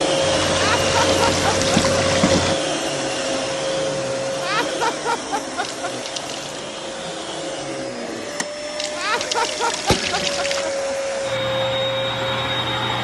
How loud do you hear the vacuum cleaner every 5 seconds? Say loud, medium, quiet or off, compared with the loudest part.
loud, medium, loud.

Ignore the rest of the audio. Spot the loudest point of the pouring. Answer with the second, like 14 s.
2 s.